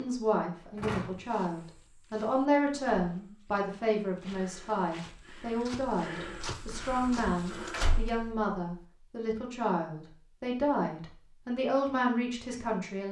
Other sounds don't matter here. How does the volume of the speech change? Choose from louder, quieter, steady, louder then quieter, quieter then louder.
steady.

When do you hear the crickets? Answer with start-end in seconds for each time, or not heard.
not heard.